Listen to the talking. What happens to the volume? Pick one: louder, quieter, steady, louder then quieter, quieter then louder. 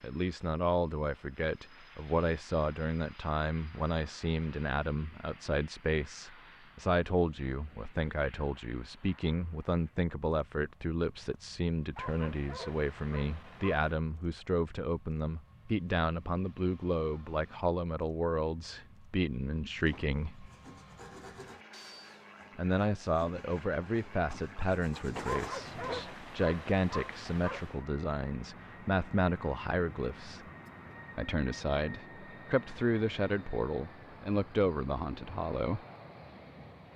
steady.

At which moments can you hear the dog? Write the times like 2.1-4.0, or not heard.
11.9-13.9, 25.2-27.9.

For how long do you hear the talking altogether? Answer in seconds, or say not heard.
33 s.